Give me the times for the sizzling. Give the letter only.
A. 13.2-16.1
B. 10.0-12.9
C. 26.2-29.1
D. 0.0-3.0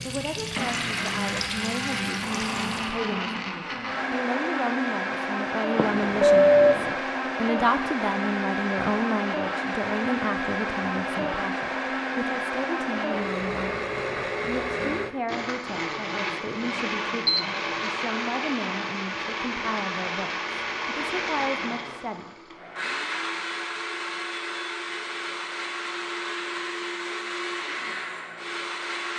D.